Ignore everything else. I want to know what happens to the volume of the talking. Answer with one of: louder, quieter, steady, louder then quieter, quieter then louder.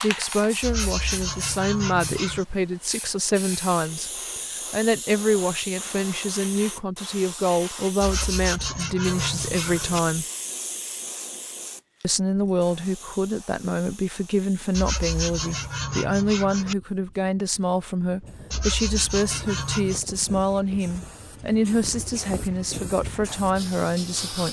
steady.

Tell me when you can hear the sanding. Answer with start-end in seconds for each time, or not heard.
0.6-2.5, 8.0-10.0, 14.7-16.8, 18.5-20.1.